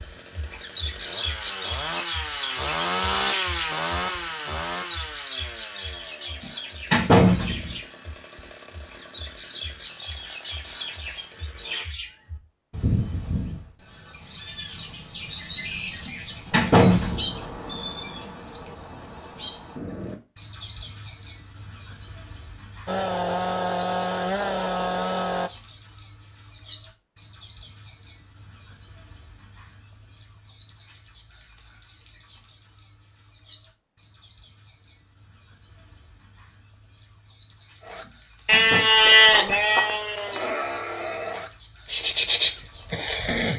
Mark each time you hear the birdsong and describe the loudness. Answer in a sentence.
The birdsong can be heard from 0.0 to 43.5 s, getting louder then quieter.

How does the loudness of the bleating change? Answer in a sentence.
The volume of the bleating goes down, then up.